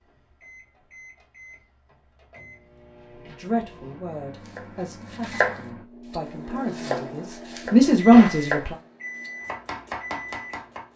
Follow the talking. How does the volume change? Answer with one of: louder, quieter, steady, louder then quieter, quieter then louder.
louder.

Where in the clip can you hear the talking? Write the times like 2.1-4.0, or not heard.
3.2-8.8.